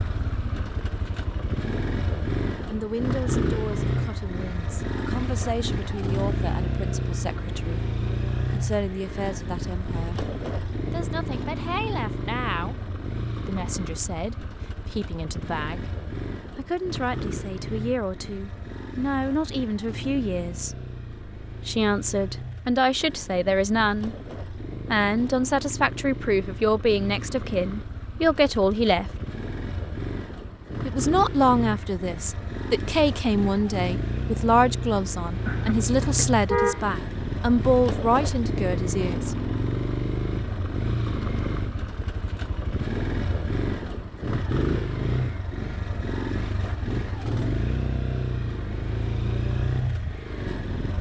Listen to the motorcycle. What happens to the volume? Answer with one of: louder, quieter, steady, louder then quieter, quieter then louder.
quieter then louder.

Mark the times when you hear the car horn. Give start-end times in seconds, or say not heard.
35.5-36.9.